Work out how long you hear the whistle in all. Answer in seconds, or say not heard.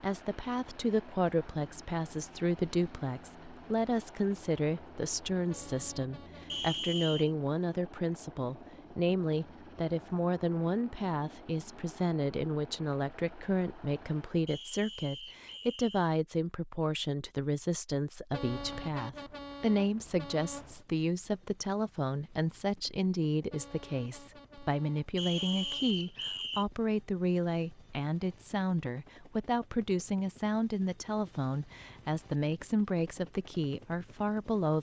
4 s.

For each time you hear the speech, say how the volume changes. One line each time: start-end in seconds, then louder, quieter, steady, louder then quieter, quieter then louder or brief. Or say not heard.
0.0-34.7 steady.